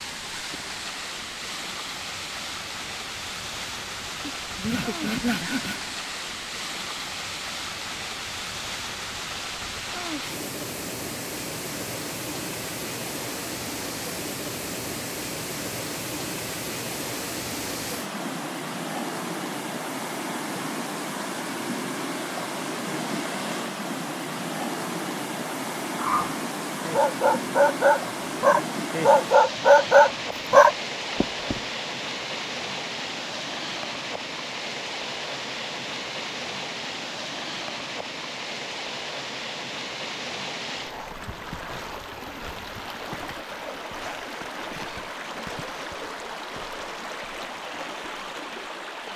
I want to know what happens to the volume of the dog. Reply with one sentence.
The loudness of the dog goes up.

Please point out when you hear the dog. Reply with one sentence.
The dog can be heard from 25.9 to 31.6 s.